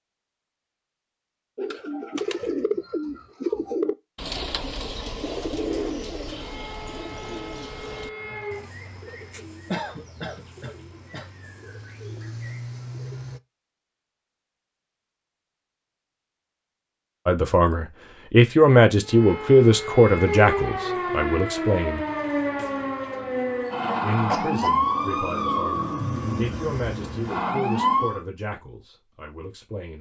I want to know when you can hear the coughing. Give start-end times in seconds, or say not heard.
9.7-11.2, 24.2-24.9.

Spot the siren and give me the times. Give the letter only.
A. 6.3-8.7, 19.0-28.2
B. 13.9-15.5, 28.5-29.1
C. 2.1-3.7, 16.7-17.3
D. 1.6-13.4
A.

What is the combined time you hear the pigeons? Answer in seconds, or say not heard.
12 s.